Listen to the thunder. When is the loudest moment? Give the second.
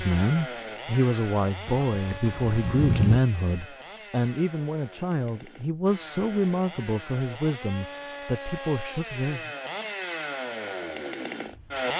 3 s.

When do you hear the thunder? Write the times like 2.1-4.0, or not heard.
1.6-3.2.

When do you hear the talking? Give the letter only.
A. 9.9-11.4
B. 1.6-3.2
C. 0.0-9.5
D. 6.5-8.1
C.